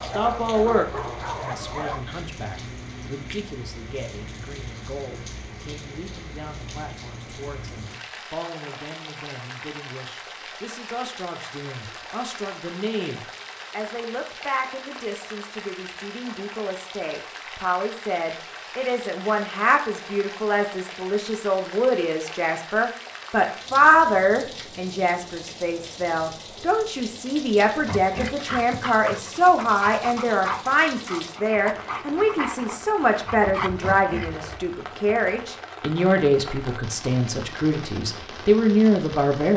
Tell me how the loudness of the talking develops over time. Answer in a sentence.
The volume of the talking goes up.